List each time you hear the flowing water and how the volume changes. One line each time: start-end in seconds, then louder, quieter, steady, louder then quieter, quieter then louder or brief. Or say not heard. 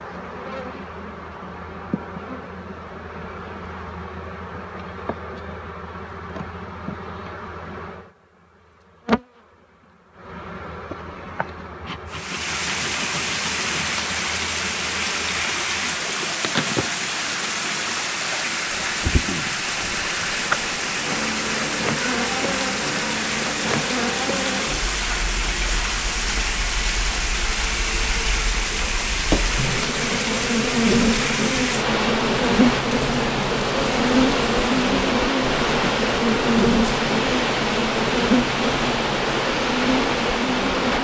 12.1-40.9 steady.